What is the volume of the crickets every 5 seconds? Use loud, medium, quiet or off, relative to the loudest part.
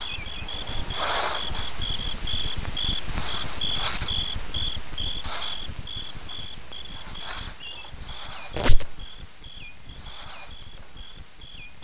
loud, medium, quiet.